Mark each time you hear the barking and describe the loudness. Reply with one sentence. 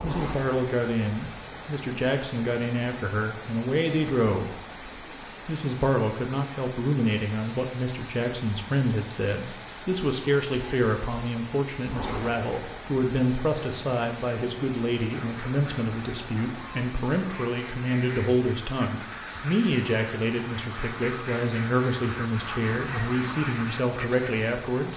You can't hear the barking here.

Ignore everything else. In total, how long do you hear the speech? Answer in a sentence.
You can hear the speech for 24 seconds altogether.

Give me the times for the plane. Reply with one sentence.
You can't hear the plane here.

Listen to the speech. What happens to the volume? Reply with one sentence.
The loudness of the speech stays about the same.